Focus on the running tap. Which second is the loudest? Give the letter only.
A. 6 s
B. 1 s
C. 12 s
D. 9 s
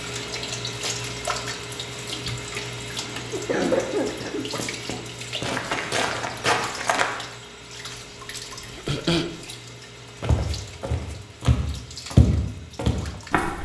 B.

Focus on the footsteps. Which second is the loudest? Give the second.
12 s.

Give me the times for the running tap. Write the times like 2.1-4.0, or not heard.
0.0-13.6.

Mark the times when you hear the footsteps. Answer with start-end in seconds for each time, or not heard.
4.5-7.0, 10.2-13.6.